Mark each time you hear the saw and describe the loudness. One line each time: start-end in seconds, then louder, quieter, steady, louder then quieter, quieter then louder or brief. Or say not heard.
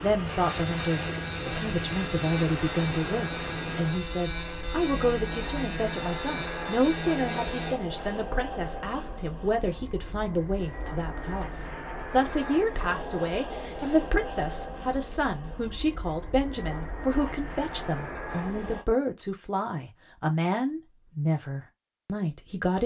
0.2-7.8 steady.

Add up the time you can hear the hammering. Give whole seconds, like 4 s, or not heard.
not heard.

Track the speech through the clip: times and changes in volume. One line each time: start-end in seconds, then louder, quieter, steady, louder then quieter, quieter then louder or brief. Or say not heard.
0.0-22.8 steady.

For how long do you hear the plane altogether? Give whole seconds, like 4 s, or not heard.
19 s.